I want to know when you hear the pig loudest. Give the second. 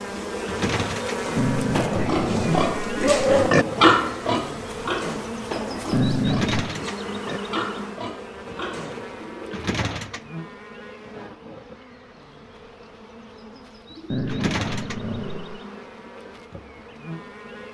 4 s.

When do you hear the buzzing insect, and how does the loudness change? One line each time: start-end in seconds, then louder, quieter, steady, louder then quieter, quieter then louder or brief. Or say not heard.
0.0-17.6 quieter.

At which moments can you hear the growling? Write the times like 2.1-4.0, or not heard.
1.4-3.5, 5.9-6.8, 14.1-15.6.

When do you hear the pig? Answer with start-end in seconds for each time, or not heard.
1.2-9.1.